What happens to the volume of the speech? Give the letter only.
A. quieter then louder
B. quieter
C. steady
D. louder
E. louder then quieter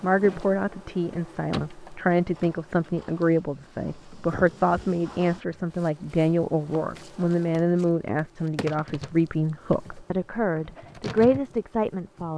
C.